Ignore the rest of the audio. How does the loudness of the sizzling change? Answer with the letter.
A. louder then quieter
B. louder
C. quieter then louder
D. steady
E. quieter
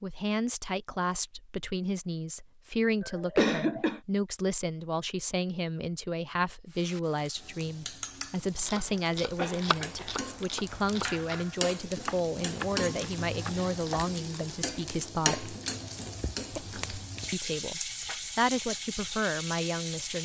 B.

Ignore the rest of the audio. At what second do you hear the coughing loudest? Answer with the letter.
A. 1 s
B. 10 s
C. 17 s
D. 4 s
D.